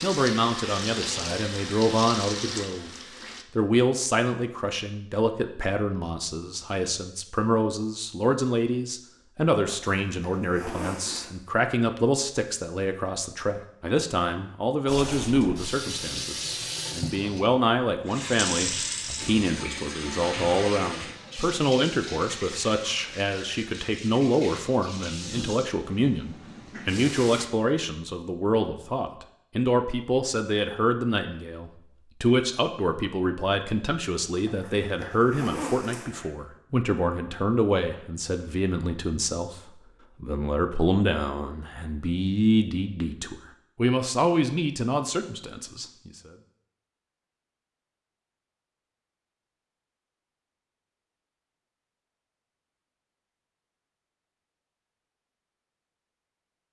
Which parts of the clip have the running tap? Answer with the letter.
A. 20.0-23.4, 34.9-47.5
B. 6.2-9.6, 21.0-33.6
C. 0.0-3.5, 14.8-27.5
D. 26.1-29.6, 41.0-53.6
C.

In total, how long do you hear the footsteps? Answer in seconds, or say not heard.
not heard.